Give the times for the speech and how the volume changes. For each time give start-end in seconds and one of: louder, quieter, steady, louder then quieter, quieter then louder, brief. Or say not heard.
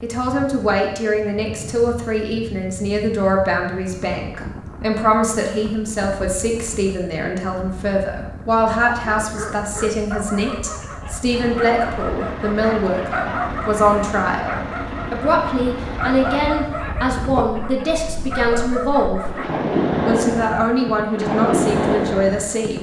0.0-19.2 steady
20.0-22.7 brief.